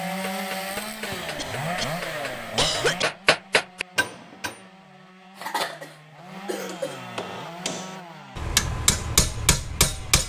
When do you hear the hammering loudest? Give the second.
9 s.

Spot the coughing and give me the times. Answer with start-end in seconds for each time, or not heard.
1.4-3.0, 5.3-7.0.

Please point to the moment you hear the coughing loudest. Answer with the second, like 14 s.
3 s.